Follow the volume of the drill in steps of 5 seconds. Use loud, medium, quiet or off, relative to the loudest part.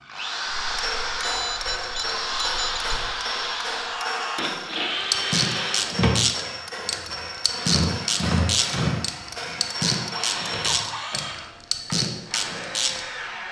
loud, loud, medium.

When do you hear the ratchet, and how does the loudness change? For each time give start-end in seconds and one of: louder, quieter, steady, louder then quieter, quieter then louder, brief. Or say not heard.
5.0-13.0 steady.